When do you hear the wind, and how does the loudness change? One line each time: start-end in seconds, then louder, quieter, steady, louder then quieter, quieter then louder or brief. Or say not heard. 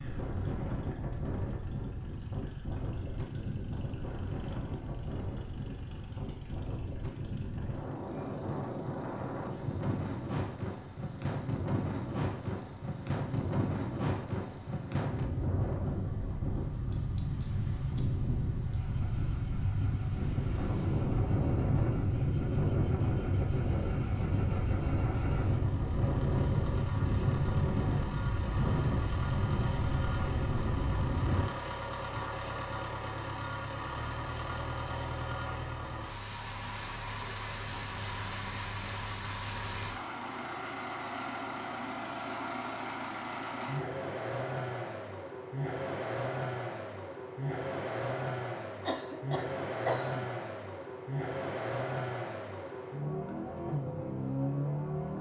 0.0-31.5 louder.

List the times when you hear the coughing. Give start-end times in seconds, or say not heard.
48.9-50.2.